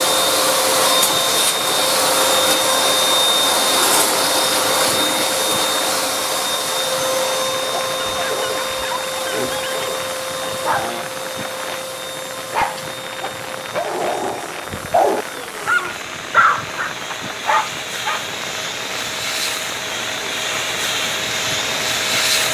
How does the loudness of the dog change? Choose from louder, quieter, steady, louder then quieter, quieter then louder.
louder.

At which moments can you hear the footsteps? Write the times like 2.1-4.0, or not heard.
not heard.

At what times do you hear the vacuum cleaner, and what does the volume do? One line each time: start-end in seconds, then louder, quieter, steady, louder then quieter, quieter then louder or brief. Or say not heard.
0.0-22.4 quieter then louder.